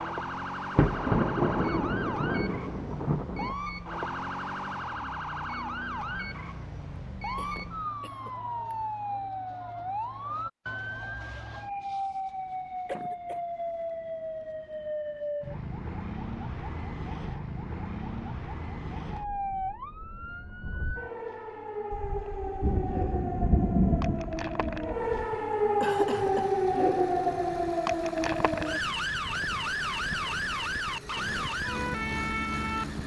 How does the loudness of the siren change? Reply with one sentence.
The volume of the siren goes up.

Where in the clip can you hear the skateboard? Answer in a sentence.
The skateboard can't be heard in this clip.